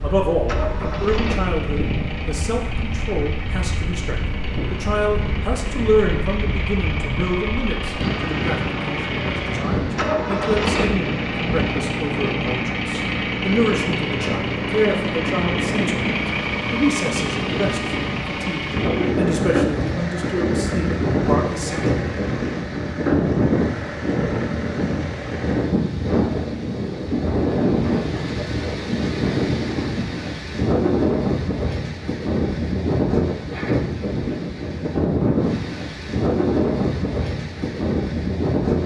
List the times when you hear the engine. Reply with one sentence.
The engine can be heard from 0.5 to 25.8 s.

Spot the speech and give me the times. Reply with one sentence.
You can hear the speech from 0.0 to 22.0 s.